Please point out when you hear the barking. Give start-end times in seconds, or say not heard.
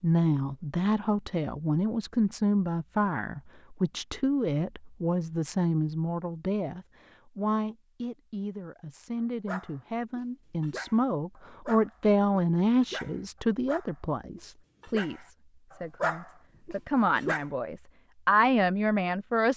9.4-17.4.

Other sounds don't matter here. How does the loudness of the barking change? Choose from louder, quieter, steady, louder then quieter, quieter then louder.
louder.